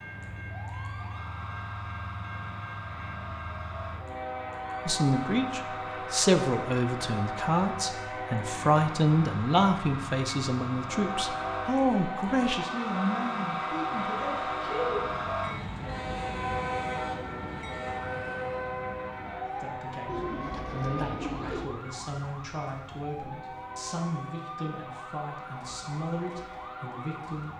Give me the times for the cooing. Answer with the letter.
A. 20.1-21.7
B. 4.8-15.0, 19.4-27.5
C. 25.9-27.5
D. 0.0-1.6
A.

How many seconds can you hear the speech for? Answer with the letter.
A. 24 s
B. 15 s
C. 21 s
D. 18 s
D.